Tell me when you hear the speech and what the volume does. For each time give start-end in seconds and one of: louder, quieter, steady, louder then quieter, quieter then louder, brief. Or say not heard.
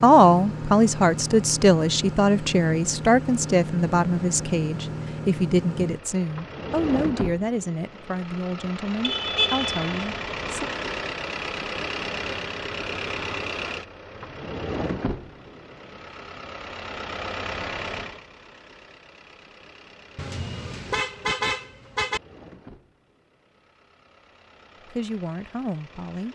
0.0-10.7 quieter
24.9-26.3 brief.